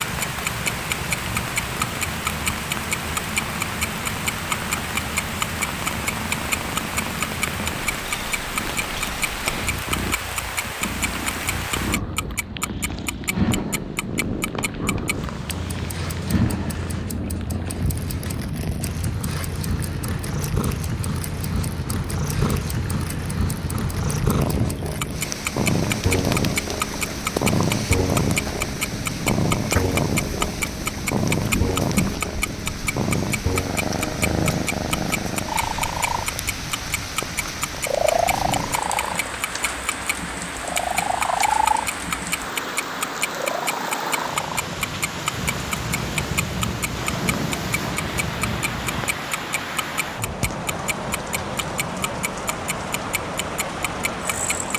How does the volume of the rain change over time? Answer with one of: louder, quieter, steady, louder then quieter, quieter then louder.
steady.